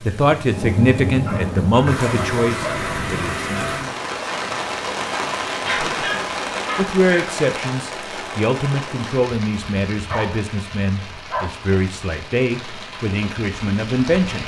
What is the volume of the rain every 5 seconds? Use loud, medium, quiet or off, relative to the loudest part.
loud, loud, medium.